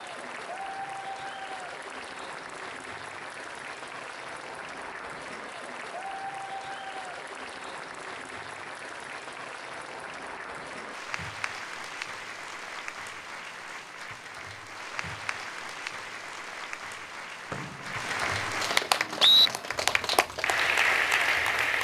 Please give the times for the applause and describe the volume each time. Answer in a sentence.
The applause can be heard from 0.0 to 21.7 s, getting louder.